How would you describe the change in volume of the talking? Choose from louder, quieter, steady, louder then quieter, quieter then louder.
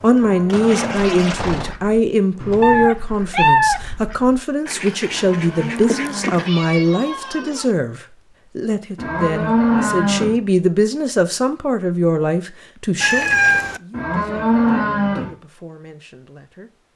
quieter.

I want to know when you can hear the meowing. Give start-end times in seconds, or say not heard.
2.6-3.8, 5.8-7.7, 13.0-13.8.